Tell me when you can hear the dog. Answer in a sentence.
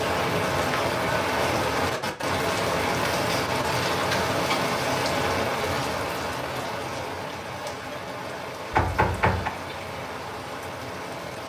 The dog can't be heard in this clip.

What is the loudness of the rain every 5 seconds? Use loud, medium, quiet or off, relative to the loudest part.
loud, medium, medium.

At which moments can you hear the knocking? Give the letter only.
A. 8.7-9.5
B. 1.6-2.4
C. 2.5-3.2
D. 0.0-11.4
A.